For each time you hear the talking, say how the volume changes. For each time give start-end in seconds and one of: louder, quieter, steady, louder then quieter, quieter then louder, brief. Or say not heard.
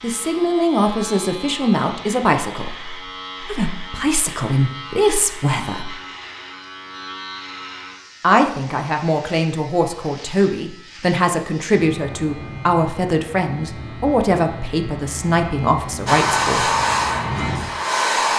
0.0-6.0 quieter then louder
8.2-16.7 steady.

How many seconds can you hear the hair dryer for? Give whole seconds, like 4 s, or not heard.
2 s.